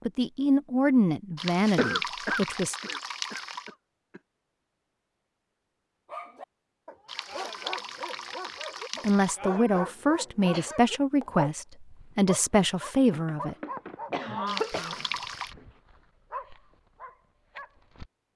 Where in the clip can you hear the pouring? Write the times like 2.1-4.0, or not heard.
1.4-3.7, 7.0-9.3, 14.4-15.6.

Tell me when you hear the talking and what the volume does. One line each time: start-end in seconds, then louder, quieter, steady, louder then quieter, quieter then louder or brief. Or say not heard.
0.1-2.8 brief
9.0-13.6 steady.